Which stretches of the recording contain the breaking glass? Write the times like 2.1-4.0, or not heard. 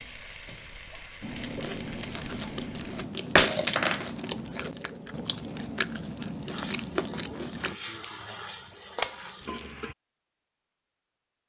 3.4-4.2, 9.0-9.7.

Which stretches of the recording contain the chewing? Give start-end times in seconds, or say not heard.
1.2-7.8.